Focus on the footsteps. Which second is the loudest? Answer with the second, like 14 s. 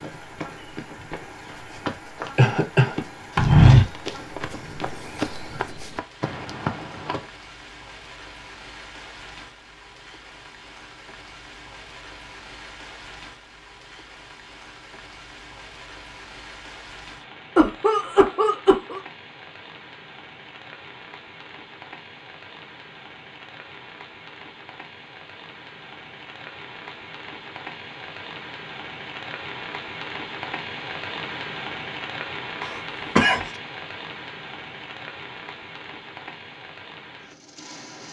4 s.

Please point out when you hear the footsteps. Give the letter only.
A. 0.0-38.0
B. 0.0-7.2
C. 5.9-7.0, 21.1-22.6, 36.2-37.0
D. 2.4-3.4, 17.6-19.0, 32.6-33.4
B.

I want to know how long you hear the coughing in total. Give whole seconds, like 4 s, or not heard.
3 s.